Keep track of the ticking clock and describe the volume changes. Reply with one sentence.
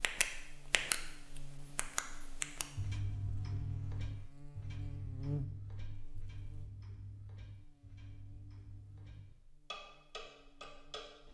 The volume of the ticking clock goes down, then up.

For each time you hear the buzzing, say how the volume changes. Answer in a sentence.
The buzzing can be heard from 0.0 to 11.2 s, getting louder then quieter.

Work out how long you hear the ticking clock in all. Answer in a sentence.
The ticking clock can be heard for 11 seconds in total.